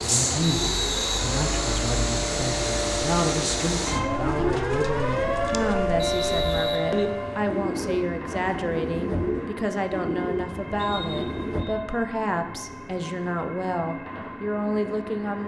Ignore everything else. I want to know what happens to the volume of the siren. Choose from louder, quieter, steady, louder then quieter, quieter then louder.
louder.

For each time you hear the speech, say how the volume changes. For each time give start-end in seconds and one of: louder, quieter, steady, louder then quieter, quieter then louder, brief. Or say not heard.
0.0-15.4 steady.